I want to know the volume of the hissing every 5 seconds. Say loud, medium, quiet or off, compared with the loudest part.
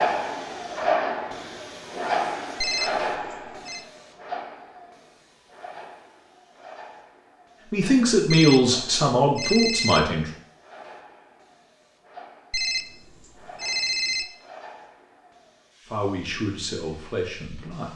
loud, quiet, quiet, quiet.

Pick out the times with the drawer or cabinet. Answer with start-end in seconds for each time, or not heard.
not heard.